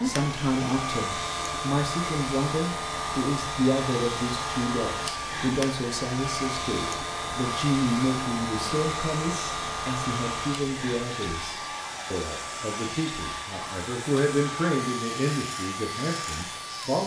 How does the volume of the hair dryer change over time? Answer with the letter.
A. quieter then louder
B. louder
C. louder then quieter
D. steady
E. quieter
D.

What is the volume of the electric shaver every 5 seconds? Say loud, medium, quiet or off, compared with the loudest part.
loud, loud, medium, medium.